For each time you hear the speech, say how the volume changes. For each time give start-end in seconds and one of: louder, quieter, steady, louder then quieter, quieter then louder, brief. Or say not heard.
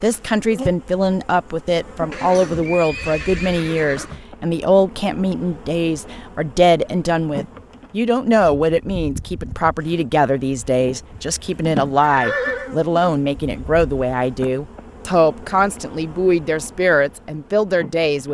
0.0-18.3 steady.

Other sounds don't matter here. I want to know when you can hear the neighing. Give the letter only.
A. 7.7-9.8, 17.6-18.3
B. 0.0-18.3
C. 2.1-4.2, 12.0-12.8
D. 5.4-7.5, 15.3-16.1
C.